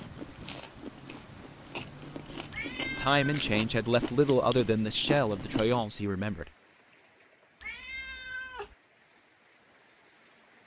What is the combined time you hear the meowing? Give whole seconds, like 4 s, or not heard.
2 s.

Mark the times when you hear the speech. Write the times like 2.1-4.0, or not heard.
3.0-6.5.